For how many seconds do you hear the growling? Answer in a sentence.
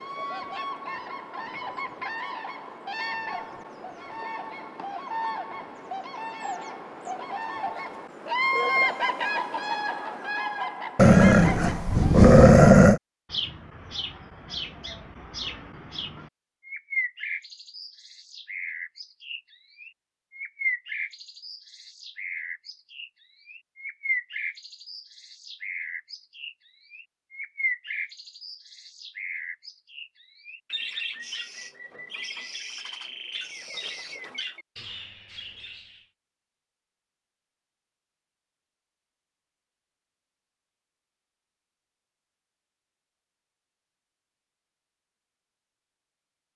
The growling can be heard for 2 seconds in total.